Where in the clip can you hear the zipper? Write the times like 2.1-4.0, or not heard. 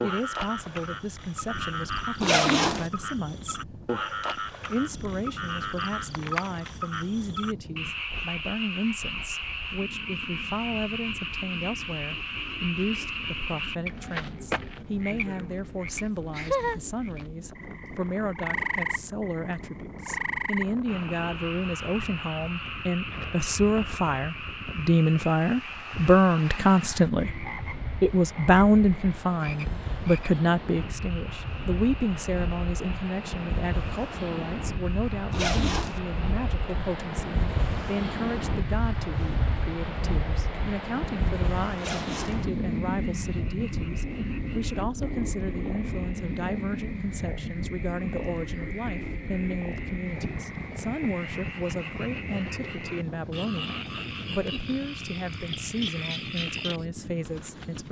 2.2-2.9, 35.3-36.0, 41.8-42.5.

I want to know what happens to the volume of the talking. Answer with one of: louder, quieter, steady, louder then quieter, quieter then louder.
louder then quieter.